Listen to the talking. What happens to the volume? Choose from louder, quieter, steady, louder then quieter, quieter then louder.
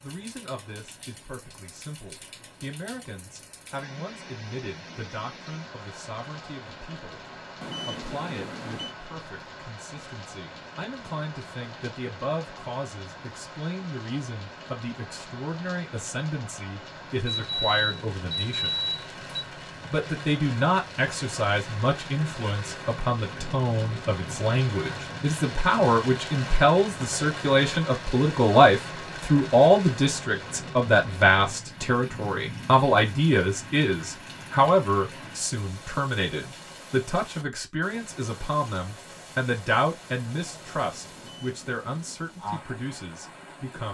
louder then quieter.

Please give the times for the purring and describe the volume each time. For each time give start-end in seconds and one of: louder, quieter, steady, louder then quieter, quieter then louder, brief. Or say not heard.
not heard.